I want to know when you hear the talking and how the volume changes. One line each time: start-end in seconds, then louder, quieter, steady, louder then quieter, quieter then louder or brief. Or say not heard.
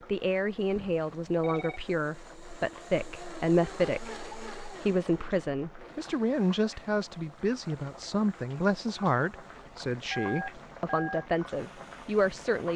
0.1-12.7 steady.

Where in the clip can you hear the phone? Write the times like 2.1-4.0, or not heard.
0.8-1.8, 10.1-11.2.